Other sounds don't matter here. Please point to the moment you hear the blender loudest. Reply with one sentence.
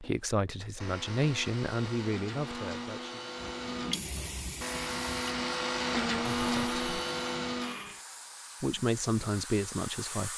The volume of the blender peaks at 6 seconds.